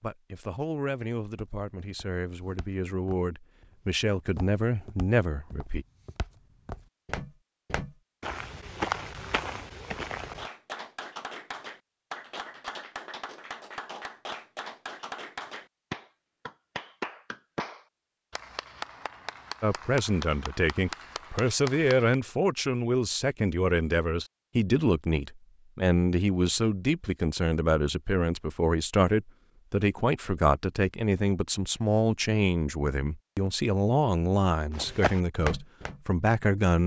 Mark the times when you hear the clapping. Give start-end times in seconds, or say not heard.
10.3-22.1.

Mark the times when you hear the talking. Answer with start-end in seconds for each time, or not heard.
0.0-5.8, 19.6-36.8.